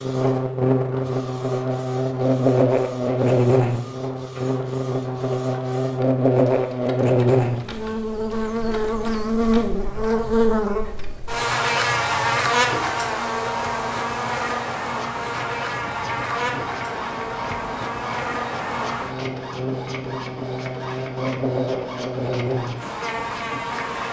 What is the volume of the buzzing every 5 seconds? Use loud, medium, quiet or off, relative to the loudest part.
loud, loud, loud, medium, medium.